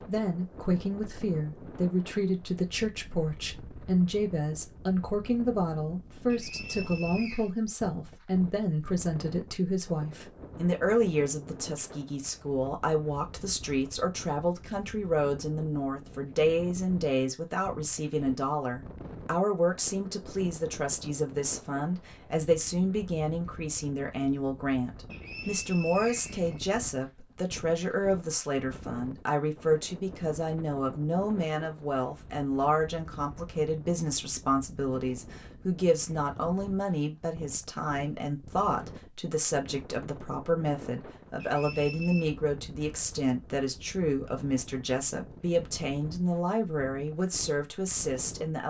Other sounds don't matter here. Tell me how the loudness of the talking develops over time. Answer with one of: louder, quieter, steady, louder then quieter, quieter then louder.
steady.